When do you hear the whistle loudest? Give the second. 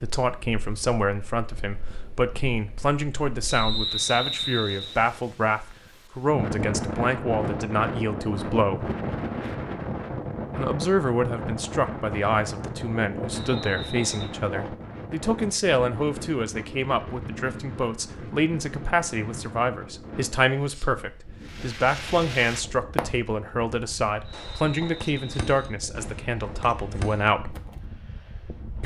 4 s.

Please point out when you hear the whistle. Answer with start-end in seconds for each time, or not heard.
3.5-5.0, 13.4-14.3, 24.2-25.8.